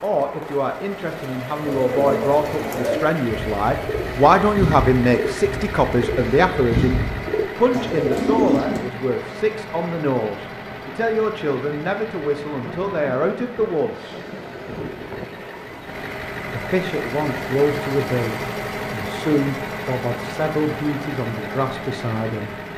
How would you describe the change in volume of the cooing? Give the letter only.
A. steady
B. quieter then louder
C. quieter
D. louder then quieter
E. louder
B.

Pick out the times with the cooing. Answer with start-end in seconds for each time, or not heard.
1.6-8.8.